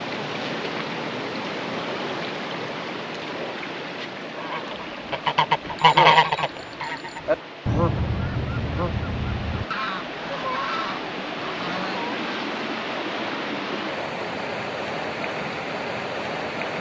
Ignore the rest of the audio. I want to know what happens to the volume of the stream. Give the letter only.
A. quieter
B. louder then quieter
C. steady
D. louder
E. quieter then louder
E.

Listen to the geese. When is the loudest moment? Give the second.
6 s.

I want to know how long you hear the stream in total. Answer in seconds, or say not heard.
17 s.